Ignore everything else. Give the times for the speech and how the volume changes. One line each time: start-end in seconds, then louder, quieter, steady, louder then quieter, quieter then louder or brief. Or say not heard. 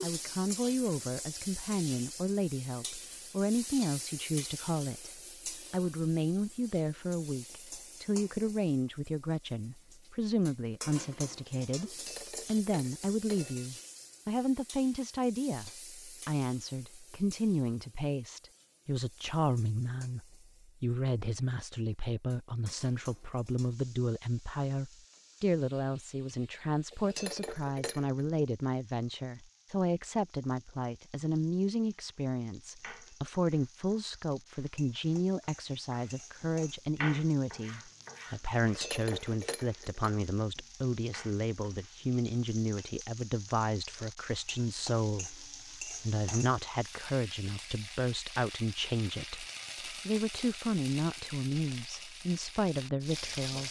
0.0-53.6 steady.